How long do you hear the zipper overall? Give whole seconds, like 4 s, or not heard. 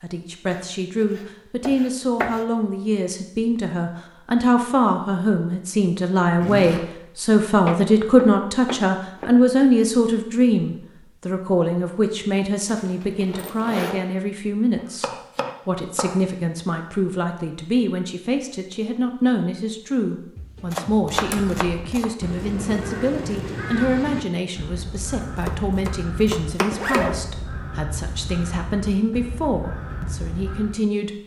2 s.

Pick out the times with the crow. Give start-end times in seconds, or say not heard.
21.1-30.8.